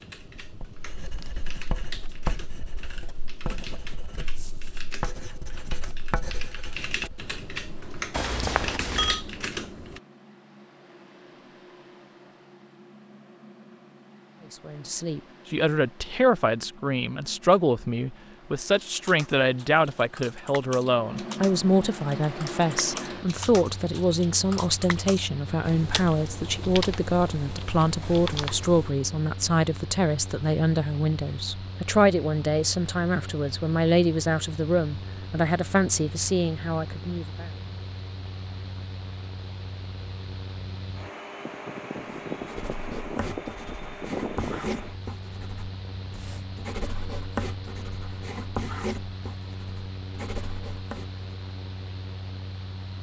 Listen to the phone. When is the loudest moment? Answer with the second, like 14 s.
9 s.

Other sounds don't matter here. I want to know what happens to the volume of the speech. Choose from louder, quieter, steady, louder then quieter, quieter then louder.
steady.